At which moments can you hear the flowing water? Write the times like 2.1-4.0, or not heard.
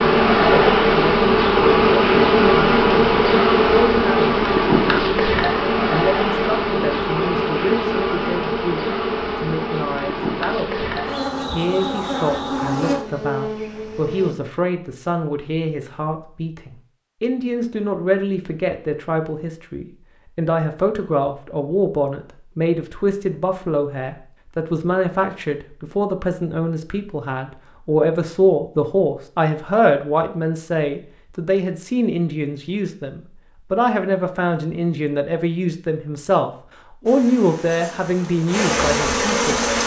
not heard.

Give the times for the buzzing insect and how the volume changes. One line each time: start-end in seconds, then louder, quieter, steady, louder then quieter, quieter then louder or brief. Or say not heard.
0.0-14.3 quieter
37.0-39.8 brief.